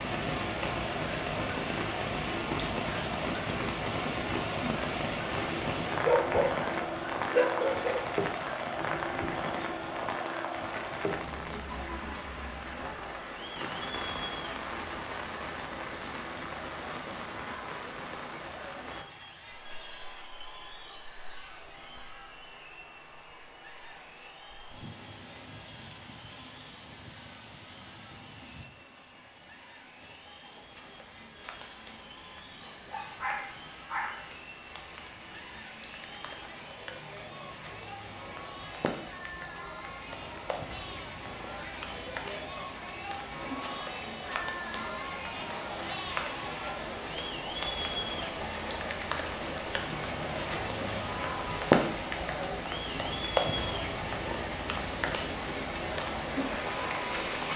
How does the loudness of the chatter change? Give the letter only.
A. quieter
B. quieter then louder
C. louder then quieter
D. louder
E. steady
B.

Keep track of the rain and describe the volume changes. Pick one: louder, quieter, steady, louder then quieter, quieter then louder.
quieter then louder.